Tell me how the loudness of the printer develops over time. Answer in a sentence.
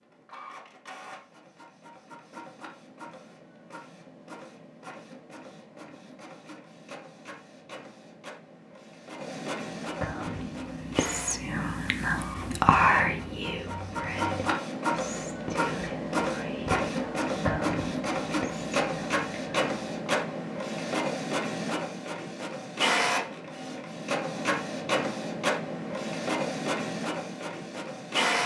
The volume of the printer goes up.